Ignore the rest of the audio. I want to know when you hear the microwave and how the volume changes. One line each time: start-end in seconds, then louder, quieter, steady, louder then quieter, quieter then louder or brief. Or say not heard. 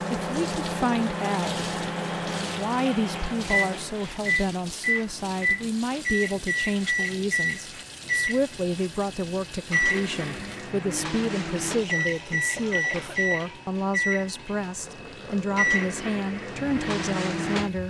0.0-17.8 steady.